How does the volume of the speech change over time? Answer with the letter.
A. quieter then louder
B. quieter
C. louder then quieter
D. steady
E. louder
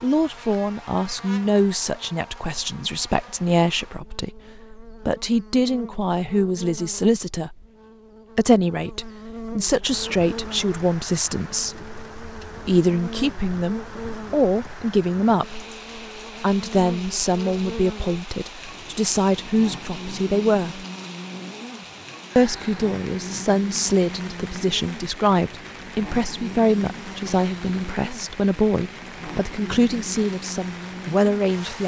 D.